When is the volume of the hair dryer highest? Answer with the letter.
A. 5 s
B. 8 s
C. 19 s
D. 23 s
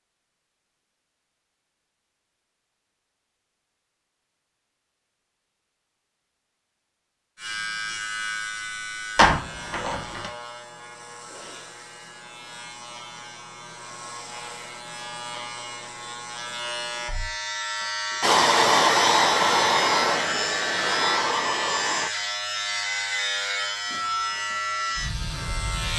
C.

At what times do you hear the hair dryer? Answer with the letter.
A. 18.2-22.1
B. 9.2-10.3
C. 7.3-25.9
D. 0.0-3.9
A.